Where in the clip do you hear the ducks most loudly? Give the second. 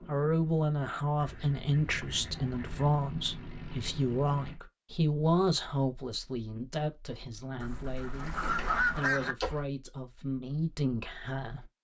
9 s.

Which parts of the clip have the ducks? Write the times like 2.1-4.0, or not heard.
1.2-2.9, 7.6-9.3.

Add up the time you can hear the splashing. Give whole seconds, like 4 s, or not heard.
2 s.